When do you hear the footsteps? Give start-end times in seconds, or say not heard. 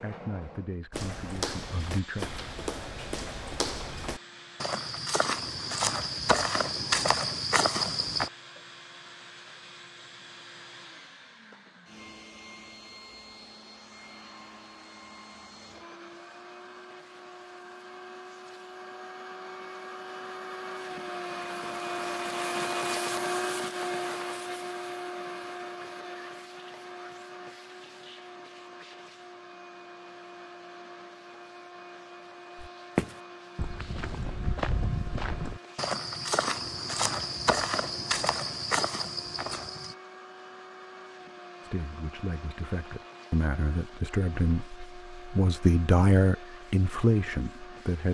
0.9-8.3, 32.5-40.0.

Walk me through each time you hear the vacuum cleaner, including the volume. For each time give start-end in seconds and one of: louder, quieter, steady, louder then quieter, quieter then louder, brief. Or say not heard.
0.0-48.0 louder then quieter.